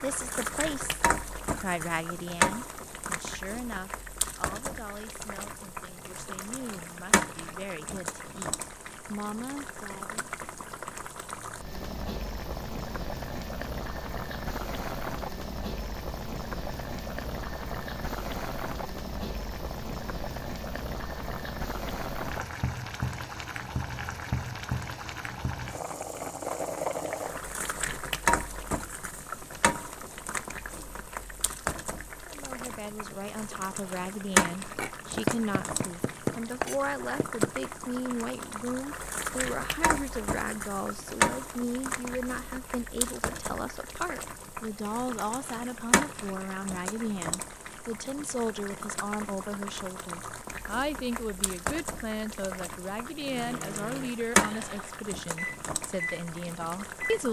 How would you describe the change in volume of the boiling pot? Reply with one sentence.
The loudness of the boiling pot stays about the same.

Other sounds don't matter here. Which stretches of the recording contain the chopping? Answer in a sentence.
You can hear the chopping from 34.8 to 37.7 s.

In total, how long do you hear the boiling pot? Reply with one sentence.
The boiling pot can be heard for 57 seconds in total.